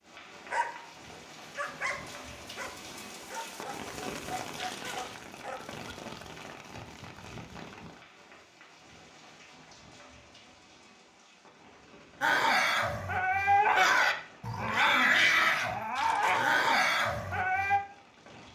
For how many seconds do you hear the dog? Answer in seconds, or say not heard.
11 s.